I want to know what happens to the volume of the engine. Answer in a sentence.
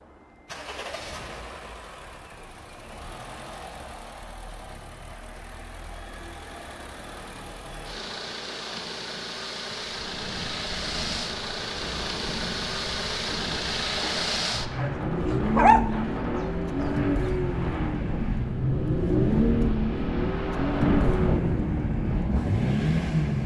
The loudness of the engine goes up.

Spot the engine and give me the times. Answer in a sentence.
The engine can be heard from 0.0 to 23.4 s.